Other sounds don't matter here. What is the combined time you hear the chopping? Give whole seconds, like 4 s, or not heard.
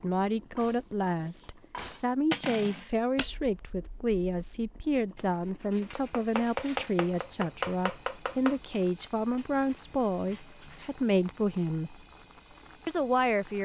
3 s.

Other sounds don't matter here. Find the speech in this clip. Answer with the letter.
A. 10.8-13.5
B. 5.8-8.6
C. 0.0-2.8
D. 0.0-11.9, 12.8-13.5
D.